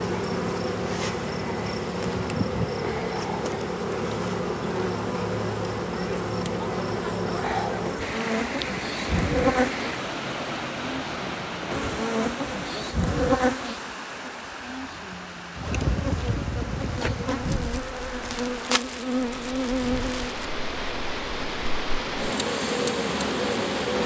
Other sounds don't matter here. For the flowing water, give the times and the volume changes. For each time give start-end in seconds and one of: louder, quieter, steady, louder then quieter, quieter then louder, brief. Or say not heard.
8.0-24.0 quieter then louder.